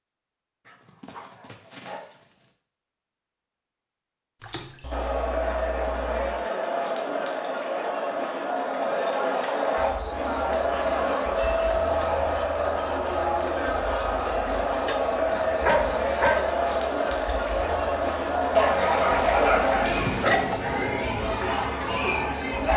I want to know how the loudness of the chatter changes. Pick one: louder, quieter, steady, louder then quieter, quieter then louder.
steady.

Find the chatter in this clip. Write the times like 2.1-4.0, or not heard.
4.9-22.7.